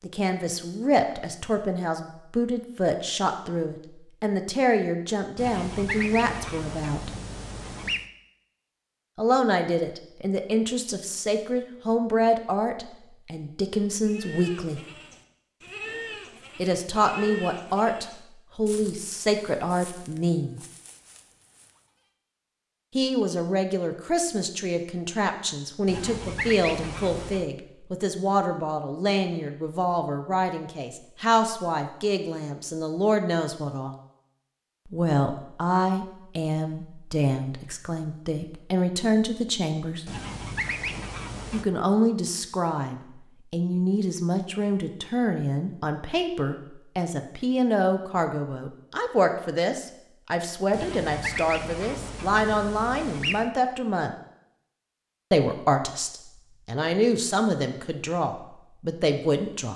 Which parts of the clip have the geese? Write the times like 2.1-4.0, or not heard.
5.3-8.1, 25.9-27.5, 40.0-41.6, 50.7-53.5.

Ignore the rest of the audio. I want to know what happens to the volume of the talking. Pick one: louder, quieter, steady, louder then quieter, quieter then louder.
steady.